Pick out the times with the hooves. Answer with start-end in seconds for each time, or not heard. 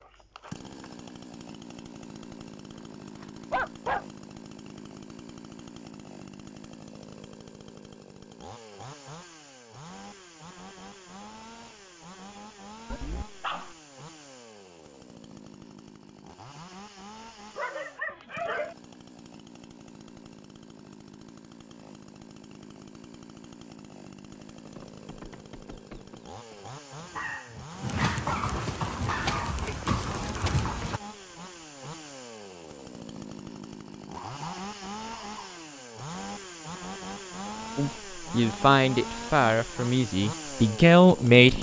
24.6-31.0.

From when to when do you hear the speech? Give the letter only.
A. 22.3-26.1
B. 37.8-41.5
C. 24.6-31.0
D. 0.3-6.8
B.